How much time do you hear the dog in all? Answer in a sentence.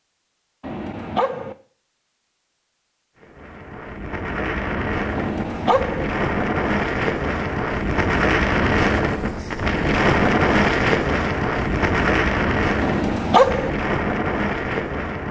You can hear the dog for 3 seconds altogether.